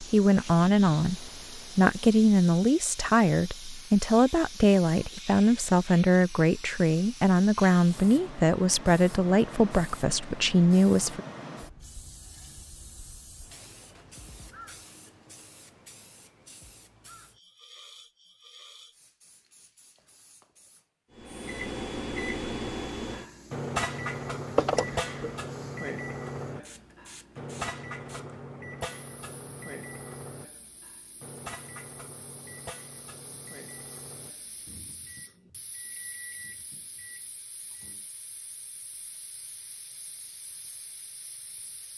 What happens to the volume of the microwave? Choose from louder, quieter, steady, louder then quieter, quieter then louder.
quieter.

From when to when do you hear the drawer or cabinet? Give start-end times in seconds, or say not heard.
24.6-25.4.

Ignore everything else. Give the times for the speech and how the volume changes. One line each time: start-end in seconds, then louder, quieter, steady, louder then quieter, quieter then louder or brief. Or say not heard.
0.0-11.2 steady.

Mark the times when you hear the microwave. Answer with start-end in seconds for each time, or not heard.
21.1-38.0.